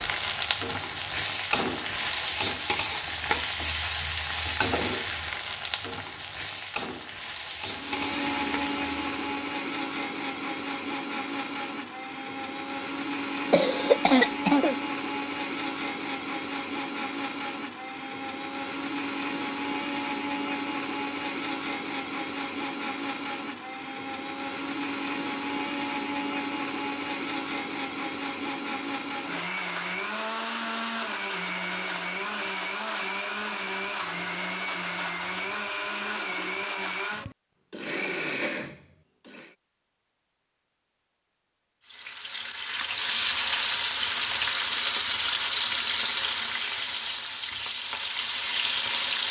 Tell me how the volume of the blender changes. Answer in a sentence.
The loudness of the blender stays about the same.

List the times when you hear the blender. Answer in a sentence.
The blender can be heard from 7.7 to 39.5 s.